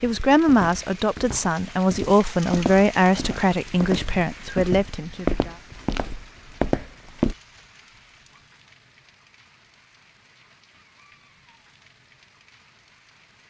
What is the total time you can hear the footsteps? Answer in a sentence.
The footsteps can be heard for 7 seconds in total.